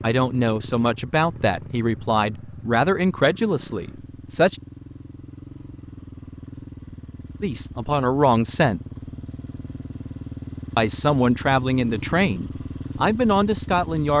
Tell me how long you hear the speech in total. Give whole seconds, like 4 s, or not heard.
9 s.